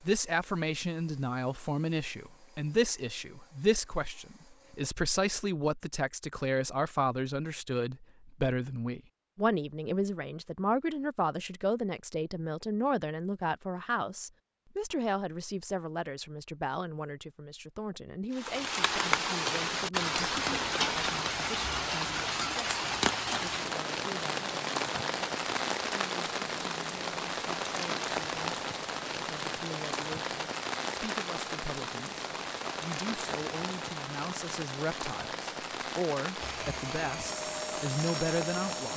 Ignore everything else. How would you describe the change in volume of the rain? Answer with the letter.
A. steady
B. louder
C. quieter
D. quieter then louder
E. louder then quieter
C.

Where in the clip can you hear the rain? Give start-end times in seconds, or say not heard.
18.3-38.9.